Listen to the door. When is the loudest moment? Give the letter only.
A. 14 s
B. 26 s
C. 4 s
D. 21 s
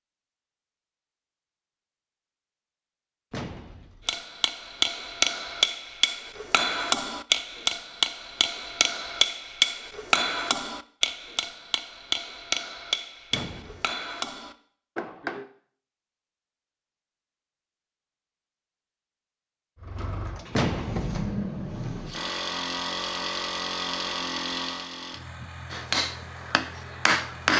D.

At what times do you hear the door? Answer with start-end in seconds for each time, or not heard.
3.3-4.1, 13.3-13.9, 20.5-21.1.